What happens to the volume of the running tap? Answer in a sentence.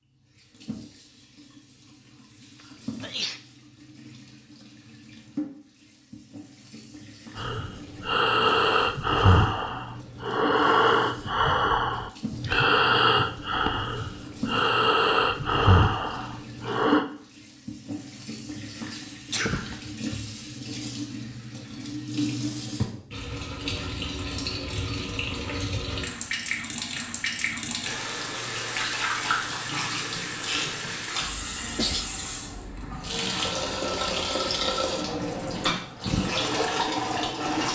The loudness of the running tap goes up.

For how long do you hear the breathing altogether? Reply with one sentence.
You can hear the breathing for 10 seconds altogether.